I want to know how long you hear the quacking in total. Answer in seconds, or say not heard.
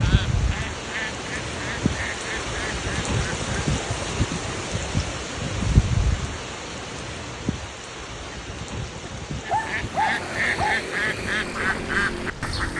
7 s.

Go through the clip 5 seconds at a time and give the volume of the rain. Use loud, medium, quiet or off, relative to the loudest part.
loud, loud, medium.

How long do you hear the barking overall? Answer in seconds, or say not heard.
2 s.